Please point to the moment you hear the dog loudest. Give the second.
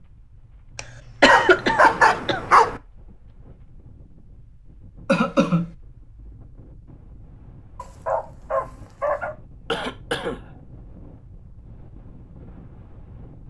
2 s.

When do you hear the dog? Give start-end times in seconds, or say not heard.
1.2-2.8, 7.8-9.3.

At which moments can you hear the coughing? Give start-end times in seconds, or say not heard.
0.8-2.4, 5.0-5.7, 9.7-10.7.